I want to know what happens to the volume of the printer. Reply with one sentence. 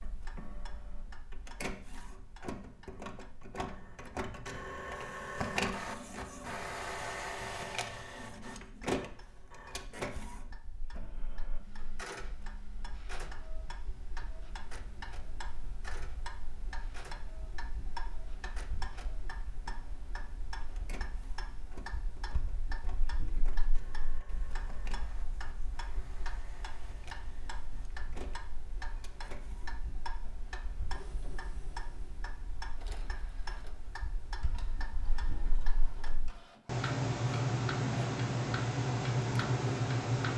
The loudness of the printer goes down.